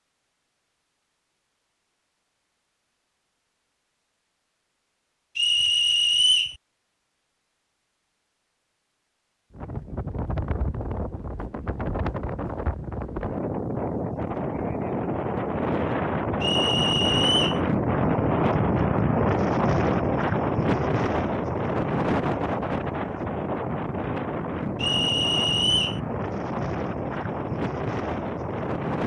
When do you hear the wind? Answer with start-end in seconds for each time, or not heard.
9.5-29.0.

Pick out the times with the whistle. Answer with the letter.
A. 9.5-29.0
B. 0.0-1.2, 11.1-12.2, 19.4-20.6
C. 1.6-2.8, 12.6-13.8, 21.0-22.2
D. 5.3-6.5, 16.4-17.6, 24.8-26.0
D.